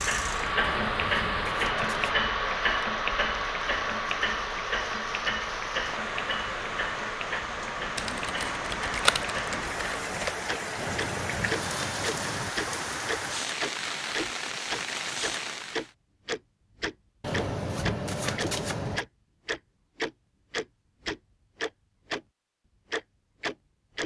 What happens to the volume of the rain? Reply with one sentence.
The loudness of the rain goes up.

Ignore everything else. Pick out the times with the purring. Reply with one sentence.
The purring can't be heard in this clip.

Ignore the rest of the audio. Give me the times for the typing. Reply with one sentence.
The typing can be heard from 8.0 to 10.3 s.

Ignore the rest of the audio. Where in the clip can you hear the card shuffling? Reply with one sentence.
The card shuffling can be heard from 0.6 to 2.2 s, from 10.8 to 12.6 s and from 17.2 to 19.1 s.